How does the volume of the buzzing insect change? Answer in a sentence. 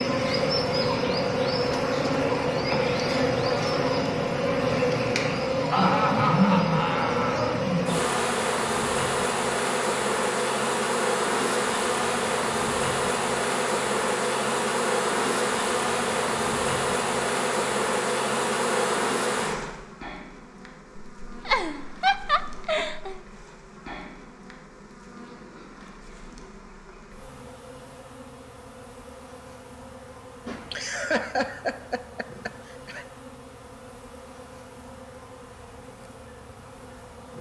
The volume of the buzzing insect goes down.